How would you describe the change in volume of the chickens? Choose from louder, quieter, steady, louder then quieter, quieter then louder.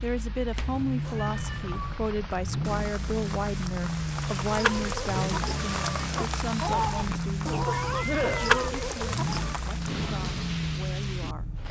quieter then louder.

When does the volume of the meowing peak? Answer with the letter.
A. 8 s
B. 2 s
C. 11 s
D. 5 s
A.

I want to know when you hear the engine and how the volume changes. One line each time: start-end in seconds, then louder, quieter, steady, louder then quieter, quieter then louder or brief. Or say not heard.
0.0-11.6 steady.